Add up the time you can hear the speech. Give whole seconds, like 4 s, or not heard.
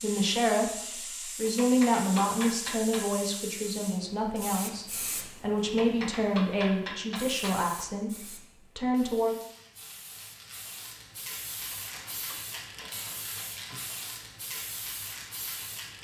9 s.